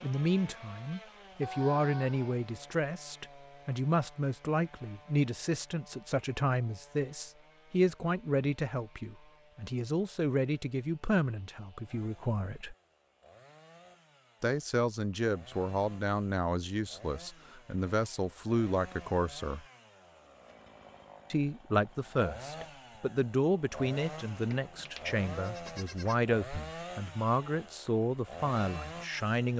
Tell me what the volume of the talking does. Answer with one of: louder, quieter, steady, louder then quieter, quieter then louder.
steady.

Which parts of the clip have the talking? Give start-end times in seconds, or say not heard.
0.0-12.8, 14.4-19.6, 21.3-29.5.